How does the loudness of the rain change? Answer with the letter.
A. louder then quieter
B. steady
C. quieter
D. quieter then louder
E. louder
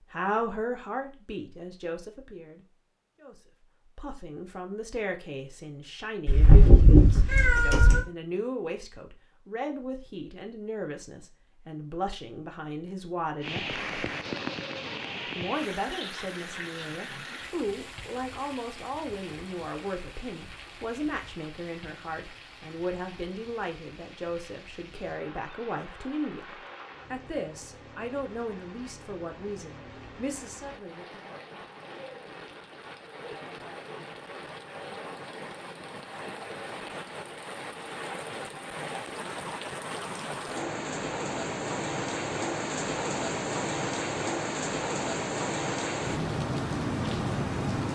D.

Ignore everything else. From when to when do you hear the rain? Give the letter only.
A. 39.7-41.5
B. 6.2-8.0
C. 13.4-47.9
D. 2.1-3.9
C.